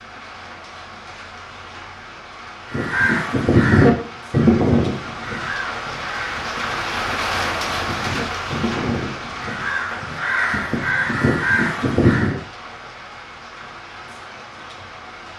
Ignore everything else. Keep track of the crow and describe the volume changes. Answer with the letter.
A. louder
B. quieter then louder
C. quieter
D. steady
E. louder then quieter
B.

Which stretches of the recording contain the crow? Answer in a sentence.
You can hear the crow from 2.7 to 12.4 s.